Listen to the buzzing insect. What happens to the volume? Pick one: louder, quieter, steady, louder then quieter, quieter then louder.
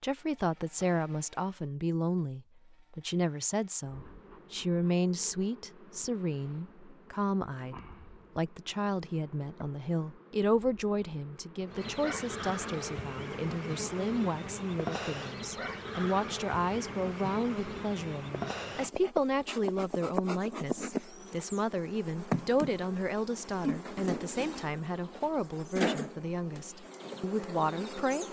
louder.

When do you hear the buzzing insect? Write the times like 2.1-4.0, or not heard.
0.1-28.2.